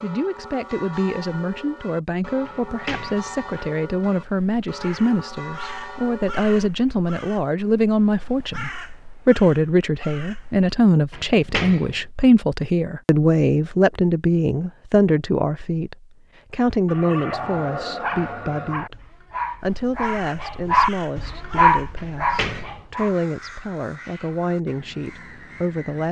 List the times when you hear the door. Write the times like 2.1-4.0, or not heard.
2.5-3.5, 11.1-12.1, 21.9-22.8.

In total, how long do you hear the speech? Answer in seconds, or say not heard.
26 s.